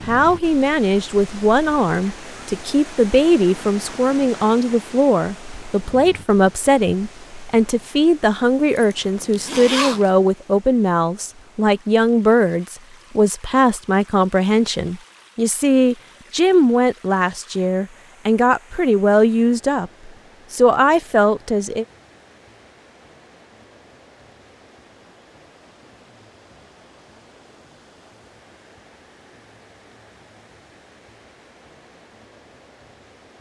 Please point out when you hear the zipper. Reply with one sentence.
You can hear the zipper from 8.8 to 10.1 s.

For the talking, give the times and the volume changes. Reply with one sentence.
You can hear the talking from 0.1 to 21.9 s, at a steady volume.